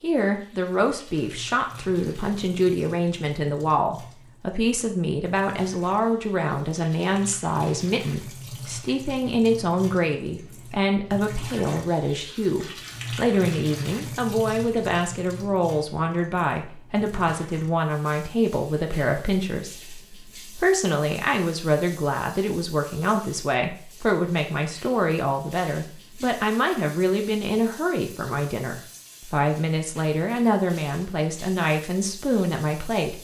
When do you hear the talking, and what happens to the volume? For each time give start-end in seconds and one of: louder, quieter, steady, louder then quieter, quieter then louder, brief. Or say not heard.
0.0-33.1 steady.